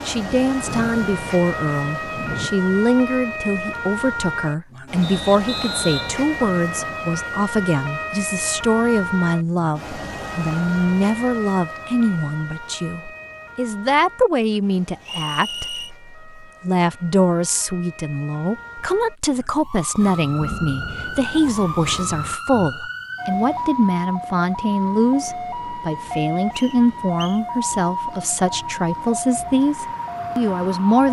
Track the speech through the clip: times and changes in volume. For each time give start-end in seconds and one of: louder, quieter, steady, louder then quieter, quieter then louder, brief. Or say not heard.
0.1-31.0 steady.